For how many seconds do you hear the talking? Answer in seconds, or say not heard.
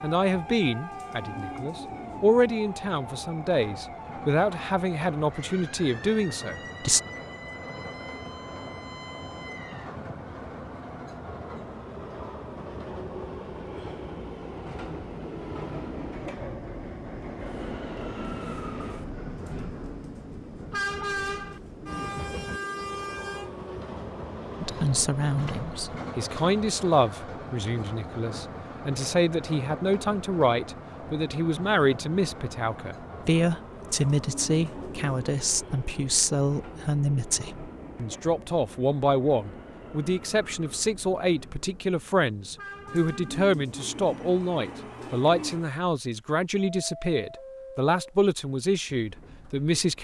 32 s.